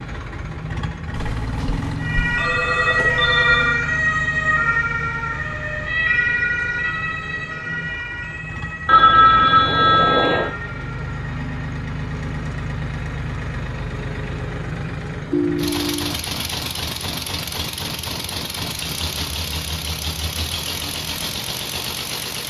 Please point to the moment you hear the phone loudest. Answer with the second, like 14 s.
9 s.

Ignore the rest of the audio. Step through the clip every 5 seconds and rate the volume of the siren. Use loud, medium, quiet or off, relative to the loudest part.
loud, medium, quiet, off, off.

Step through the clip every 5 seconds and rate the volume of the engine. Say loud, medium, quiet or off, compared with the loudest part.
loud, medium, loud, loud, loud.